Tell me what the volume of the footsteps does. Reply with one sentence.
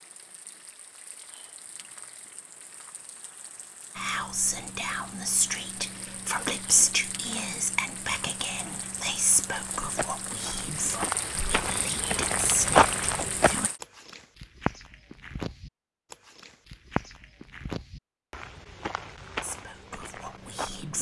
The volume of the footsteps goes up, then down.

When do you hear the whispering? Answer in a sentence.
You can hear the whispering from 4.0 to 13.7 s and from 19.4 to 20.9 s.